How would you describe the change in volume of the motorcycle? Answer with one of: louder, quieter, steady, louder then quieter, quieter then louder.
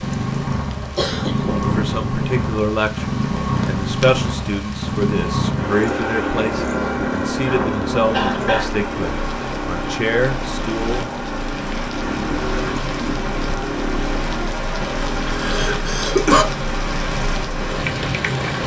quieter.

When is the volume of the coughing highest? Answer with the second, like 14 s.
16 s.